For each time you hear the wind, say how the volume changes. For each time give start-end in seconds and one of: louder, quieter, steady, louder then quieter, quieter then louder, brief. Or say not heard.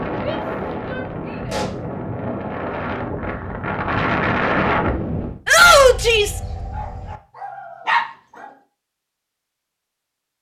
0.0-5.4 louder.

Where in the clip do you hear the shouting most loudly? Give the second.
6 s.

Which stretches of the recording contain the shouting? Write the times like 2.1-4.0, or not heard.
0.2-1.6, 5.5-6.4.